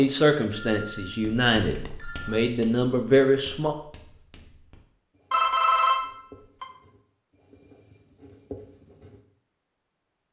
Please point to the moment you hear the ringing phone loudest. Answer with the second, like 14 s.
6 s.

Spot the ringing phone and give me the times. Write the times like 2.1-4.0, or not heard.
0.5-2.5, 5.3-6.7.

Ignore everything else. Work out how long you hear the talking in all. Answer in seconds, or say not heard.
4 s.